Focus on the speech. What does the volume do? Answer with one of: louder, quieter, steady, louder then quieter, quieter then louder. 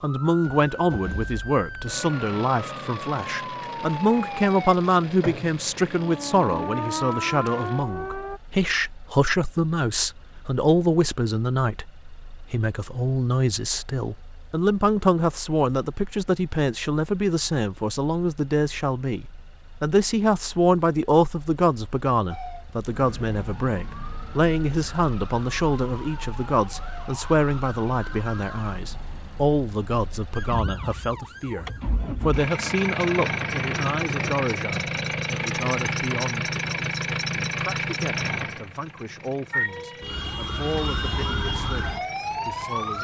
quieter.